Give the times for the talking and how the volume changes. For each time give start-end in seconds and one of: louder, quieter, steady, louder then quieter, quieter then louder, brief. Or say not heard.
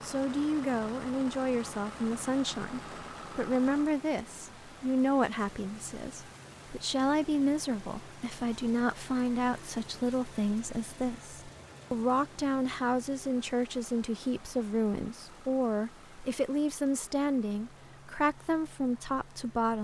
0.0-19.7 steady.